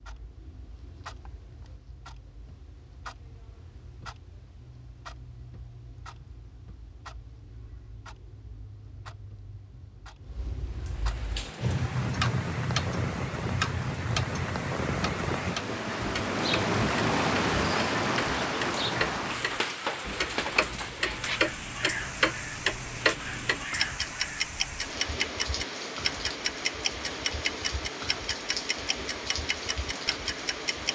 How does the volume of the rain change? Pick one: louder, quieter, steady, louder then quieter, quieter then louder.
louder then quieter.